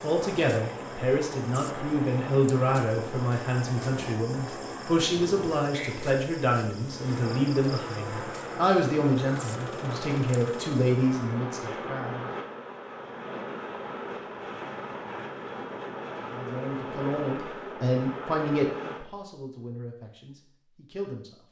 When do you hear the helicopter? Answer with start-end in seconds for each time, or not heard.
0.0-19.0.